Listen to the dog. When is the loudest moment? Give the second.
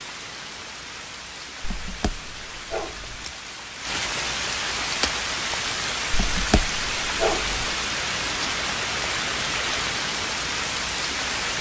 7 s.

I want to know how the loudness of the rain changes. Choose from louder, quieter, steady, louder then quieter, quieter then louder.
louder.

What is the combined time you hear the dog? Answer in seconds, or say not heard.
3 s.